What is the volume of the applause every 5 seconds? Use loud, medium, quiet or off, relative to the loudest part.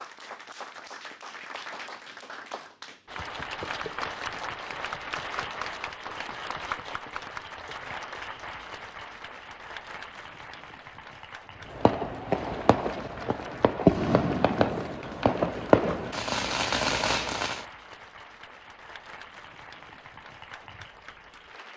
loud, loud, medium, medium, medium.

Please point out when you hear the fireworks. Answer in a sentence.
You can hear the fireworks from 11.7 to 17.6 s.